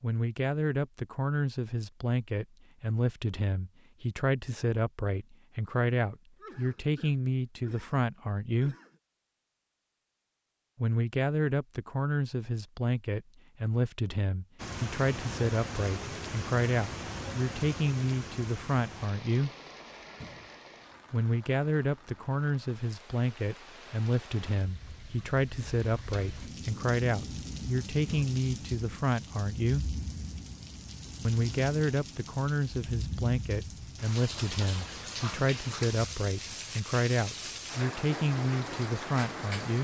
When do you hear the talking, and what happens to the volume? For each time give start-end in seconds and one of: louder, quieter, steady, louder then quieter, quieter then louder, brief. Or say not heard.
0.0-8.8 steady
10.8-19.5 steady
21.1-29.9 steady
31.2-39.8 steady.